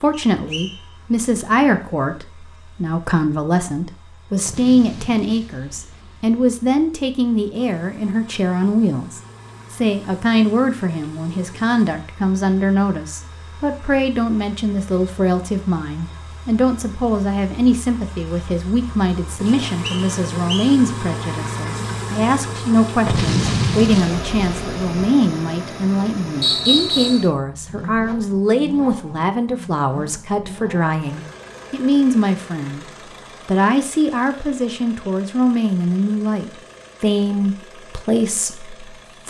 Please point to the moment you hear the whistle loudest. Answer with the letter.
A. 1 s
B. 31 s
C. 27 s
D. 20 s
C.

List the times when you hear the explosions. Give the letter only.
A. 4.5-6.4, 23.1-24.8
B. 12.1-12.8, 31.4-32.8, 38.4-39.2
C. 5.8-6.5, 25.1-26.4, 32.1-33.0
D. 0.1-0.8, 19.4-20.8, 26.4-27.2
A.